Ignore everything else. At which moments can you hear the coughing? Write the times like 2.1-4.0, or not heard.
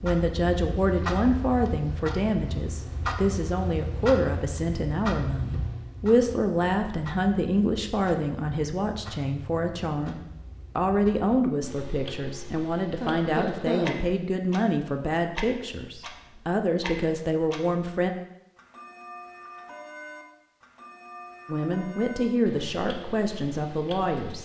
13.0-14.1.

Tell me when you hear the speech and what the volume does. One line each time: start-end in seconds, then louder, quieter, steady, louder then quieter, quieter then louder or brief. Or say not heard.
0.0-18.1 steady
21.4-24.4 brief.